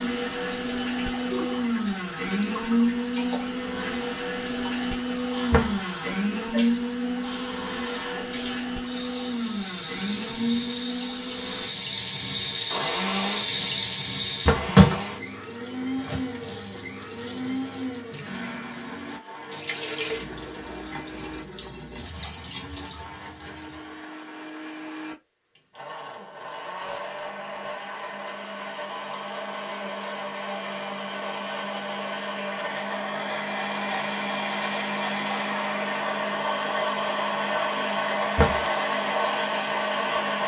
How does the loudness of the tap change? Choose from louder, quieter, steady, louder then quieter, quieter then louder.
louder then quieter.